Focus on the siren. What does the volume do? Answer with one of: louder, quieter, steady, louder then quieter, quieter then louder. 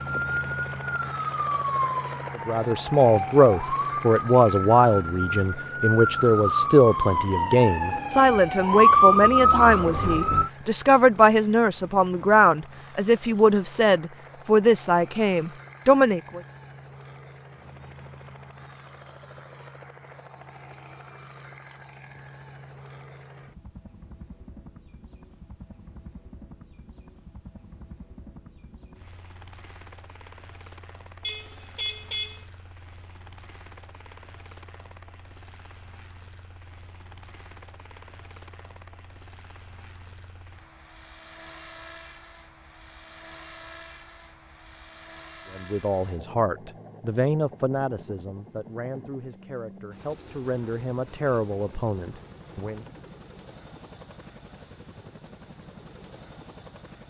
louder.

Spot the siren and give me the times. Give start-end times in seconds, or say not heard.
0.0-10.5.